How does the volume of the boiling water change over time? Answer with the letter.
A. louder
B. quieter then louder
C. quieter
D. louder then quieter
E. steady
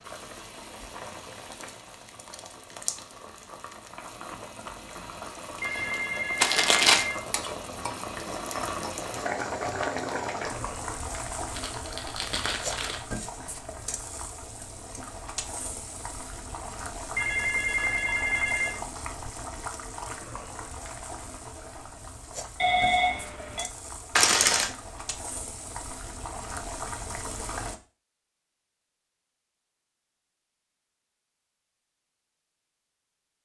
D.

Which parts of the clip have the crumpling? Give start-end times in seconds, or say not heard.
6.4-7.0, 11.6-13.1, 24.1-24.7.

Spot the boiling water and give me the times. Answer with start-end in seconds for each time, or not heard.
0.0-27.8.